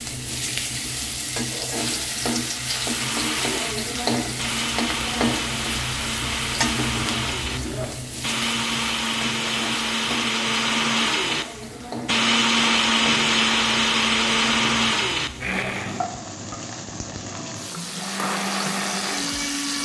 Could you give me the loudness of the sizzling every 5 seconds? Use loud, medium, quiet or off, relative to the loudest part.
loud, loud, medium, medium.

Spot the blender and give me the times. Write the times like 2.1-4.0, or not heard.
2.6-16.1, 17.8-19.7.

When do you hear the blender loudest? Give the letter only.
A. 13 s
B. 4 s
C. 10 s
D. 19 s
A.